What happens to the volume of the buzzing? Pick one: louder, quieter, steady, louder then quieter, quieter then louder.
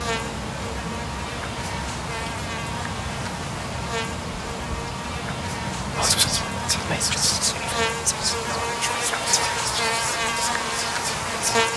louder.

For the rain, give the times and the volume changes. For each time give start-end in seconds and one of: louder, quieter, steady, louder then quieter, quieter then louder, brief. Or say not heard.
0.0-11.7 quieter.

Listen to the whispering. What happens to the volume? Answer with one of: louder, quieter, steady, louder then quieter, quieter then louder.
quieter.